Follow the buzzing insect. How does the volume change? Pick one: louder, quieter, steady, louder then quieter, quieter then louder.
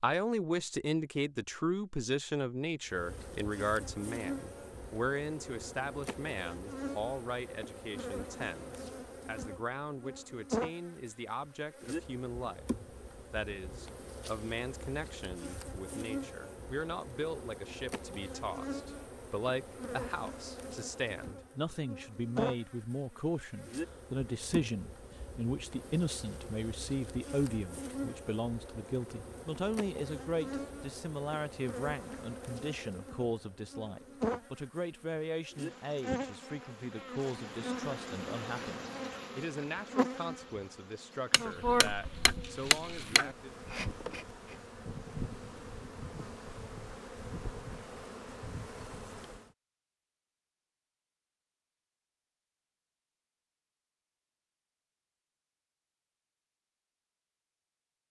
steady.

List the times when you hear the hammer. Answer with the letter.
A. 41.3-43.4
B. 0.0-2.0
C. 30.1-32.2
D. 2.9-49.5
A.